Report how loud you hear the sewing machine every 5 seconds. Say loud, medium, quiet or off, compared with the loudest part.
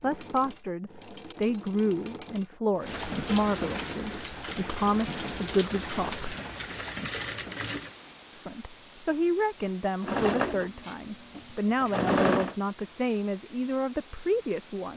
quiet, medium, loud.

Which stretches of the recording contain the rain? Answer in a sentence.
You can hear the rain from 2.8 to 14.9 s.